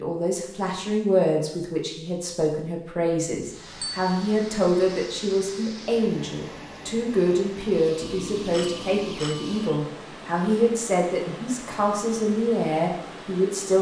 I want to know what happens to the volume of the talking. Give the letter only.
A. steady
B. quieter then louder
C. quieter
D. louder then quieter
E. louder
A.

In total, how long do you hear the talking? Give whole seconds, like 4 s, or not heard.
14 s.